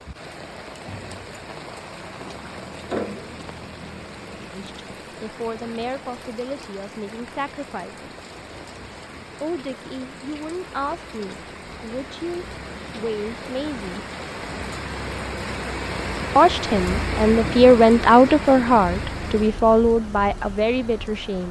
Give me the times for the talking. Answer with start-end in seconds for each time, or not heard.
4.5-8.2, 9.4-14.1, 16.4-21.4.